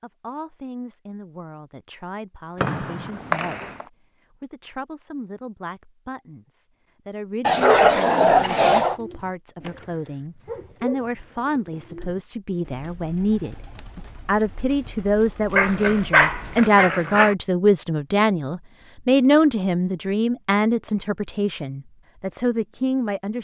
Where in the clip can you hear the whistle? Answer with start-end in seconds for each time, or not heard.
2.5-3.9.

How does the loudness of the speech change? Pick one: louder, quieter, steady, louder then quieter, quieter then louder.
louder.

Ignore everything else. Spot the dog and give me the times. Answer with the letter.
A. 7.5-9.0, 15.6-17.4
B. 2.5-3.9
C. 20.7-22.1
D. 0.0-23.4
A.